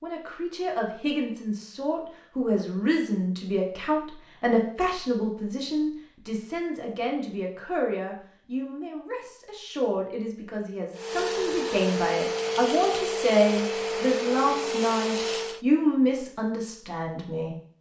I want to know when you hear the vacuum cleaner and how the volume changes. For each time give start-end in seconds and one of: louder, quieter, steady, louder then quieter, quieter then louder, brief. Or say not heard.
10.9-15.7 steady.